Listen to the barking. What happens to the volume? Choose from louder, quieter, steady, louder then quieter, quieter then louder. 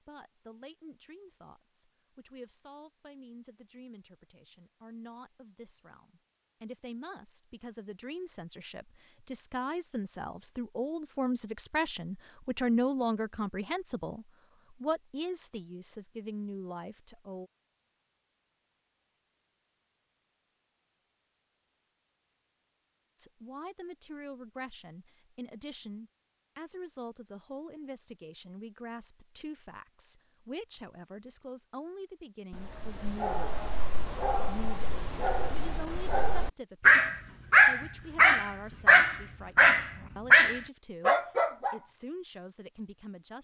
louder.